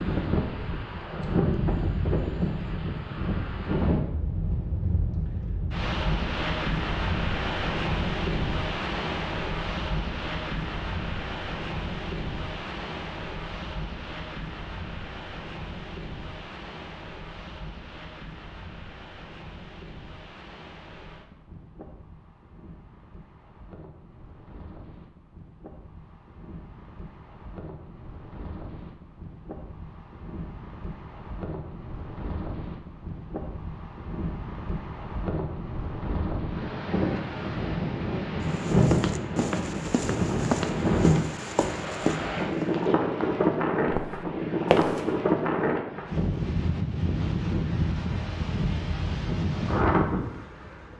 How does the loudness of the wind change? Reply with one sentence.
The volume of the wind goes down, then up.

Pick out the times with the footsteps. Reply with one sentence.
You can hear the footsteps from 38.5 to 45.0 s.